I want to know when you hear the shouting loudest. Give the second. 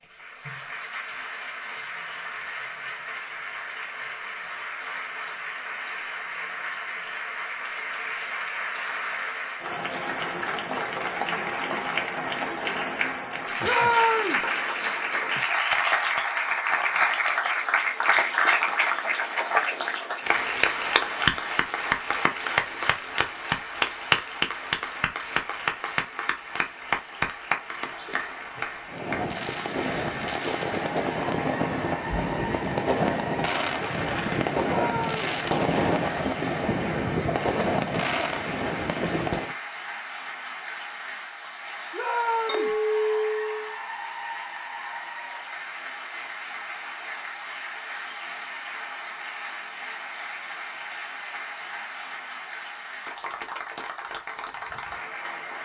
14 s.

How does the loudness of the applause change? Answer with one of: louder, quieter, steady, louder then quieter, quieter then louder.
louder then quieter.